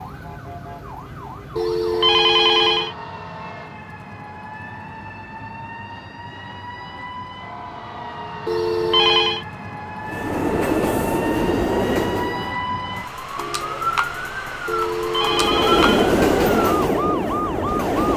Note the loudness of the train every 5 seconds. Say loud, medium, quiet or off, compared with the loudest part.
off, off, loud, loud.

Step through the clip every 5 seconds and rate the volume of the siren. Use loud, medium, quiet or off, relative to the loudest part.
medium, medium, loud, loud.